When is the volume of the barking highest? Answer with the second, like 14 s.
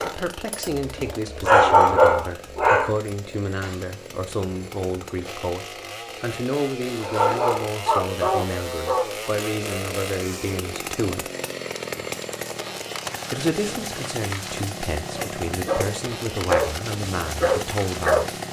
2 s.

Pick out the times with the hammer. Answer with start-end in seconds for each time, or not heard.
not heard.